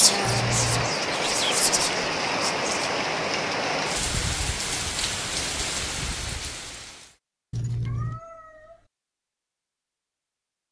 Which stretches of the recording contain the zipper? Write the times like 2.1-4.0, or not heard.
0.2-0.9, 7.5-8.2.